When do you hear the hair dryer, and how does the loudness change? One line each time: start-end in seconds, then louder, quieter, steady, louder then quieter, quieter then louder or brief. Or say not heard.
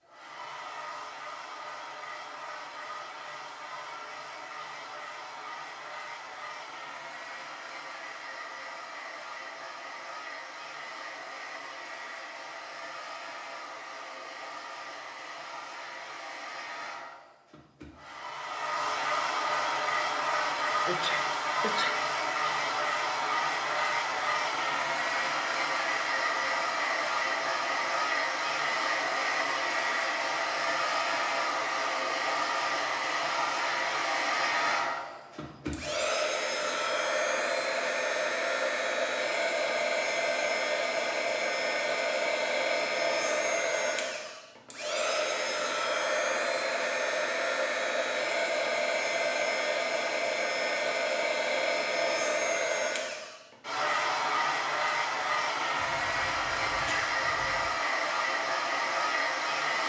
0.0-59.8 louder.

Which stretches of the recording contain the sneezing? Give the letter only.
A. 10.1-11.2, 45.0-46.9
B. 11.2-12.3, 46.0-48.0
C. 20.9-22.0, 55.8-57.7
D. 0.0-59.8
C.